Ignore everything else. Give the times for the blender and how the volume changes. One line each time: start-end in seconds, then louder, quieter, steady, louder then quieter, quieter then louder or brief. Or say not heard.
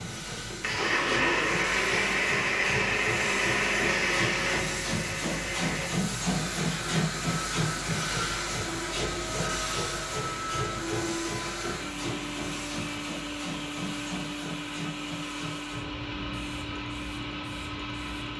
0.0-18.3 quieter.